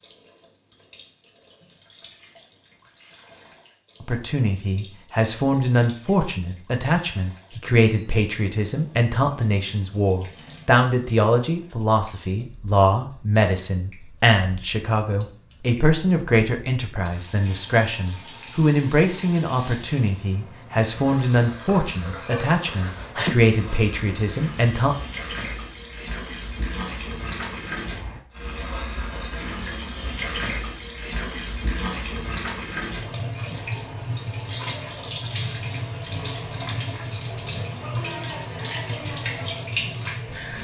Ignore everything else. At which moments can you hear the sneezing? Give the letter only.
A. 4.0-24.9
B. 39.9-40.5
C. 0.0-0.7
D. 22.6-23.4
D.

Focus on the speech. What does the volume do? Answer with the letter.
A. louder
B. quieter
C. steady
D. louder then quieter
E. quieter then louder
C.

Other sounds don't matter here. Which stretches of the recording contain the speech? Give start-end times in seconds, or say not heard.
4.0-24.9.